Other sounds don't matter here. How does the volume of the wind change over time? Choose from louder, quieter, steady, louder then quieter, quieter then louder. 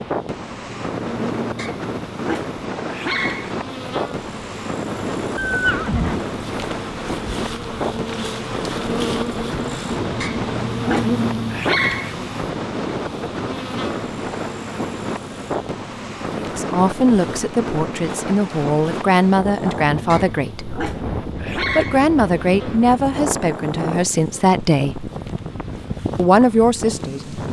steady.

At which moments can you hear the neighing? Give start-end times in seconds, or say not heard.
5.3-6.2.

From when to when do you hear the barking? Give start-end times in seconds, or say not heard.
1.6-3.5, 10.2-12.2, 20.1-22.1.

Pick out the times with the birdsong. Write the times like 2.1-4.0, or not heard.
not heard.